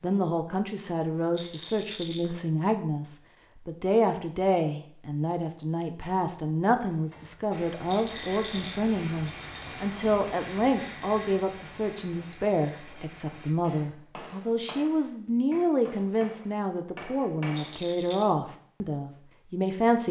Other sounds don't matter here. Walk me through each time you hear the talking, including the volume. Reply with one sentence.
The talking can be heard from 0.0 to 20.0 s, at a steady volume.